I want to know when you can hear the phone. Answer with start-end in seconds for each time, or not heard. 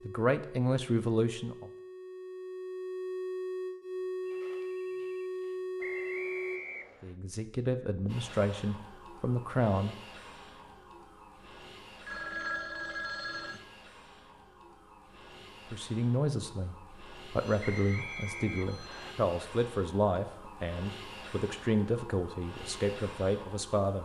4.2-6.2, 12.1-13.6, 17.3-19.2.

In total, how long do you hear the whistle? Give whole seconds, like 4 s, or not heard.
3 s.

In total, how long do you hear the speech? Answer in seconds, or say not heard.
13 s.